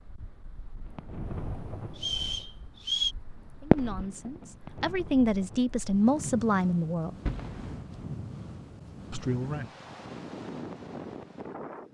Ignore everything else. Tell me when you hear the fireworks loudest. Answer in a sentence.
The loudest moment of the fireworks is at 4 seconds.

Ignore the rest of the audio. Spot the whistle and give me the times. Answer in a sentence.
The whistle can be heard from 1.9 to 3.1 s.